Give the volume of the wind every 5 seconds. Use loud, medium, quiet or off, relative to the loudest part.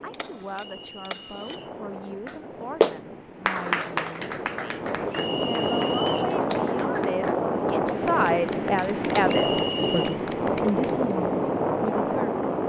quiet, loud, loud.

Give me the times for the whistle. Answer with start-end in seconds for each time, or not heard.
0.5-1.8, 5.1-6.3, 9.2-10.2.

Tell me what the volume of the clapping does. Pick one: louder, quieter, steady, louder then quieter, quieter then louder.
quieter.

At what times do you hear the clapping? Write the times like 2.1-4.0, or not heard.
2.2-10.9.